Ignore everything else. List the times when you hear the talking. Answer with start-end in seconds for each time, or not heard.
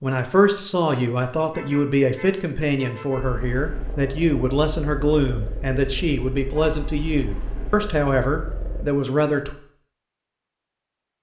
0.0-9.6.